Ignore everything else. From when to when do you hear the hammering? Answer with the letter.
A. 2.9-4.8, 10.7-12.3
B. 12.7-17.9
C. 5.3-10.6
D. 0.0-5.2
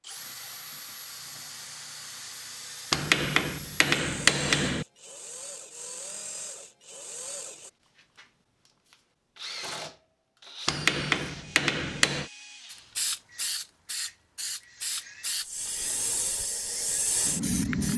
A.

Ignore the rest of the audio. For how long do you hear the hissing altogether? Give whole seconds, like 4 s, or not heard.
5 s.